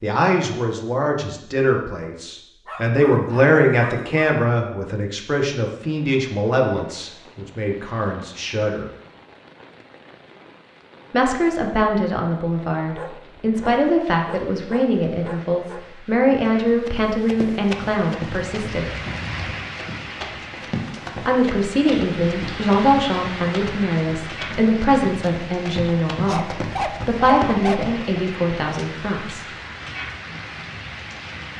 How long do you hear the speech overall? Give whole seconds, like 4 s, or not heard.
25 s.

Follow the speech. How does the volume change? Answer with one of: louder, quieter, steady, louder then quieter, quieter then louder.
steady.